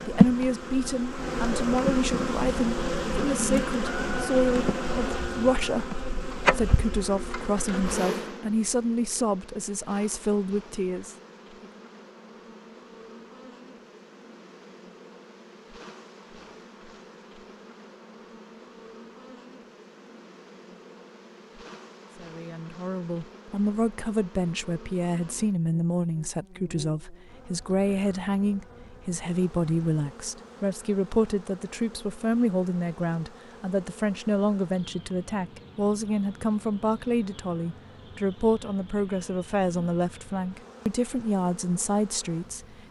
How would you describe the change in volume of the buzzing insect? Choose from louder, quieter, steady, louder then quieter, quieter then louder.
quieter.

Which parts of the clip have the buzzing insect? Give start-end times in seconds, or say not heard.
0.0-42.8.